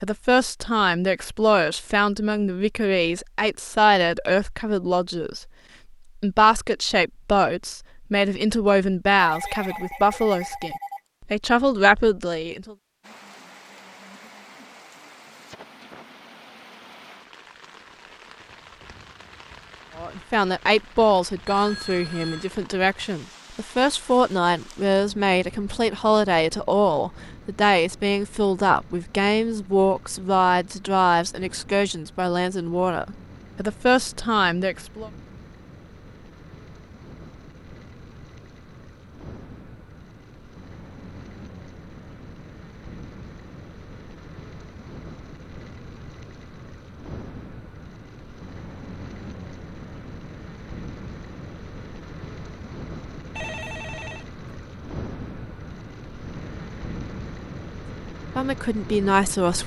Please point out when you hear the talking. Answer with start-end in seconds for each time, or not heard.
0.0-5.5, 6.2-12.8, 19.9-35.1, 58.4-59.6.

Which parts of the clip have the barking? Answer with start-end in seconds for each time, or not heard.
not heard.